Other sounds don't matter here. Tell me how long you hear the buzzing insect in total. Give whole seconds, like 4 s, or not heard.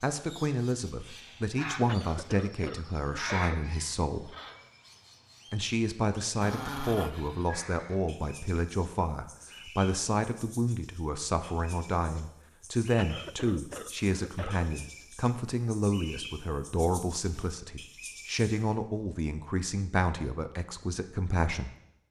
not heard.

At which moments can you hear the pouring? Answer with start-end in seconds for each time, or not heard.
not heard.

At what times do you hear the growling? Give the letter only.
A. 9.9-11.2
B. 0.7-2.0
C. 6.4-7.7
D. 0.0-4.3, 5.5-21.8
C.